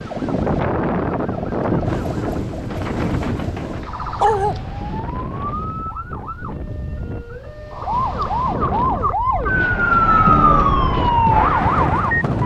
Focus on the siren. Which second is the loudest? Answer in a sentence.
The volume of the siren peaks at 10 seconds.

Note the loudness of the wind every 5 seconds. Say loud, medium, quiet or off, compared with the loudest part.
loud, medium, loud.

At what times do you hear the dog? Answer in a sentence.
The dog can be heard from 3.6 to 4.6 s.